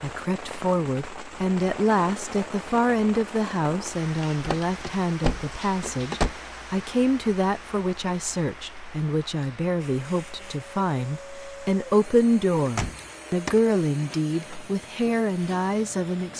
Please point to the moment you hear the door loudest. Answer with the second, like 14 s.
6 s.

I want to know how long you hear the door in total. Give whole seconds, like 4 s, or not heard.
3 s.